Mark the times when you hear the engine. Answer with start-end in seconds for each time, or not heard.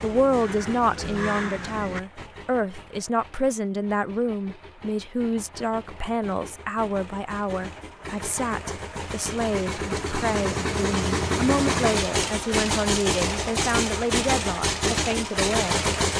0.0-16.1.